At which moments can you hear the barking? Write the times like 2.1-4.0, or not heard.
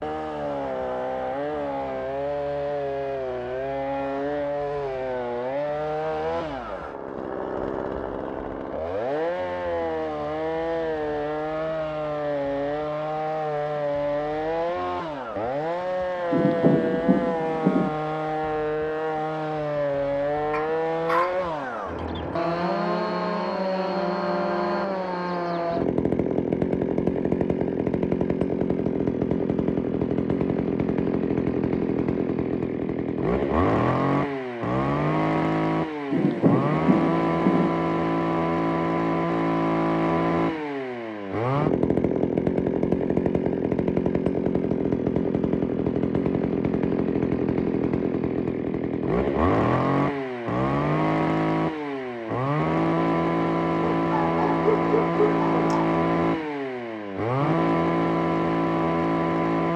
20.5-21.4, 54.0-55.9.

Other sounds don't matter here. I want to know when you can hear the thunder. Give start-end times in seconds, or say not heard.
16.3-17.9, 36.1-37.7.